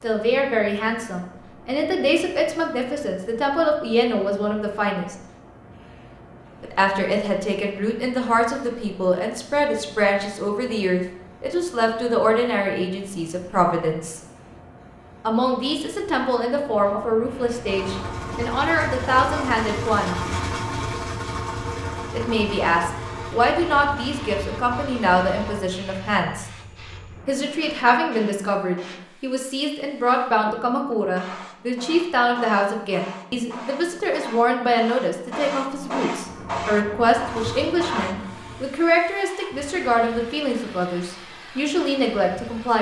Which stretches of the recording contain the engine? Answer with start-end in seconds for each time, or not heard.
17.6-25.6, 36.2-38.6.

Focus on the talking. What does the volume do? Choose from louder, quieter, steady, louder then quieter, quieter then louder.
steady.